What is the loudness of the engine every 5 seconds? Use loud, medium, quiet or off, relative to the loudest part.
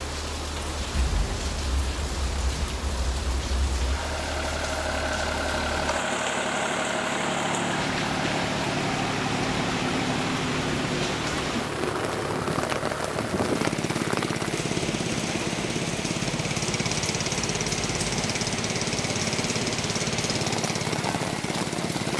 medium, loud, loud, loud, loud.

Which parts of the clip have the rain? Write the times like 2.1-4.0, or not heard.
0.0-22.1.